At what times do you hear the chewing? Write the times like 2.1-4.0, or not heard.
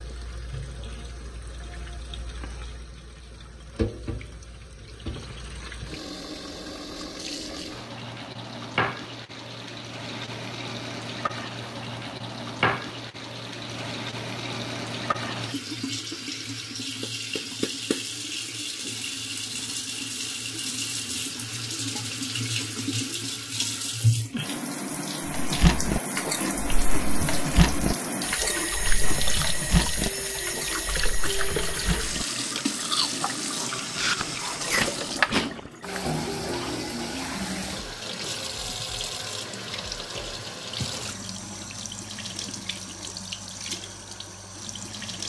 25.2-35.7.